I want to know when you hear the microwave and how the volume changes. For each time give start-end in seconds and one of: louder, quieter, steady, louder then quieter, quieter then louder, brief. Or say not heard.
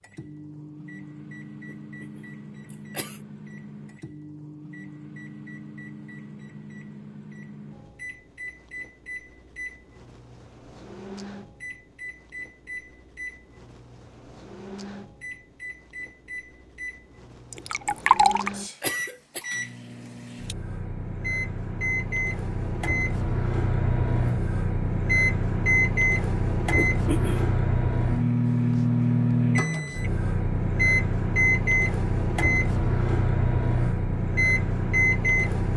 0.0-35.7 louder.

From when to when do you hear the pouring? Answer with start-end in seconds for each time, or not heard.
17.5-18.5.